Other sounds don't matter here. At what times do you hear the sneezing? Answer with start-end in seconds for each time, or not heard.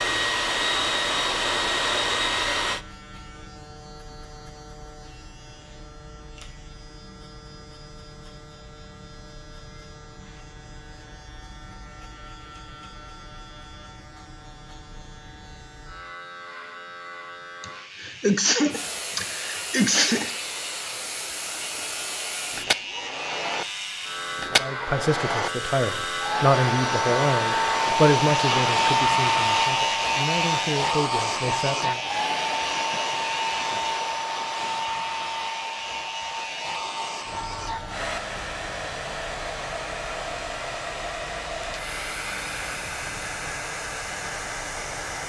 17.6-20.3, 28.3-28.8.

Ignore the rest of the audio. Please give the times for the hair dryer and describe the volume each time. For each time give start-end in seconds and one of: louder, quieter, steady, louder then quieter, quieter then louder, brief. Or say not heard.
0.0-2.9 brief
18.7-45.2 louder then quieter.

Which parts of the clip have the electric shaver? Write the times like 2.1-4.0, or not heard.
0.0-45.2.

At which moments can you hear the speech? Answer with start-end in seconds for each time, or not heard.
24.6-32.0.